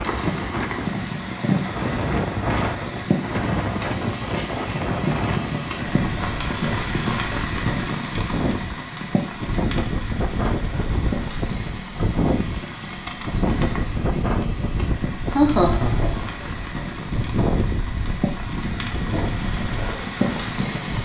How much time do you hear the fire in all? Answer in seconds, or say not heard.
21 s.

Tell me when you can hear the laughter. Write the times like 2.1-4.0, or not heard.
15.3-16.3.